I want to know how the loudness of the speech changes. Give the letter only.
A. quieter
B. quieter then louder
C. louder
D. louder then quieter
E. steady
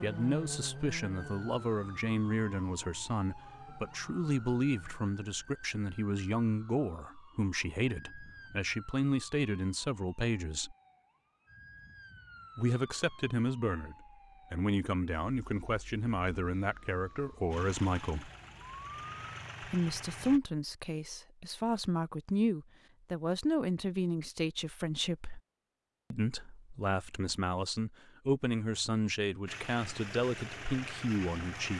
E.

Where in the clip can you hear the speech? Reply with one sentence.
The speech can be heard from 0.0 to 10.8 s, from 12.6 to 18.3 s, from 19.6 to 25.4 s and from 26.1 to 31.7 s.